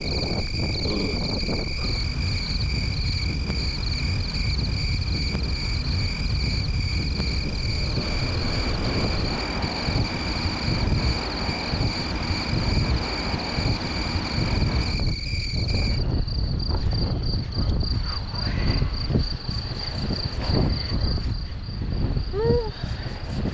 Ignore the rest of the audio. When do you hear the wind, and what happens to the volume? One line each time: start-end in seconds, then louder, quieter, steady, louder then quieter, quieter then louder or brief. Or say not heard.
0.0-23.4 steady.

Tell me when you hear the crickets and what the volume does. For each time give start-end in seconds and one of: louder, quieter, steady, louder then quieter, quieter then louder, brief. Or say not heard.
0.0-23.4 steady.